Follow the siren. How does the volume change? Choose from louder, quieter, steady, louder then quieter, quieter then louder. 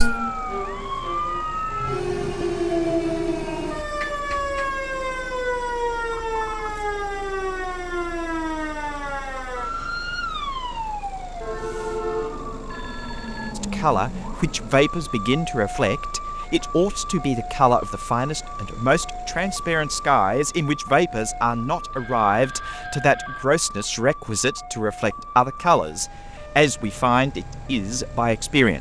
quieter.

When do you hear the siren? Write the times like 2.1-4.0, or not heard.
0.0-28.7.